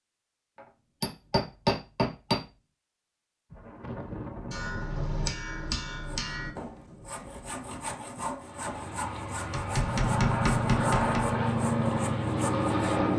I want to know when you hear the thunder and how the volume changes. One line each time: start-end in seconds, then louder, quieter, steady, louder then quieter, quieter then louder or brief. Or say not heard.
3.5-7.7 quieter.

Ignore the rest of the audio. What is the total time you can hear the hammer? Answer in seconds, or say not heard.
6 s.